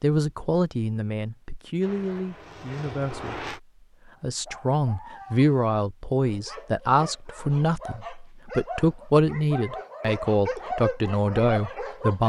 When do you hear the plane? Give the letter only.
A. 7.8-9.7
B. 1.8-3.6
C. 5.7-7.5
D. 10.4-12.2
B.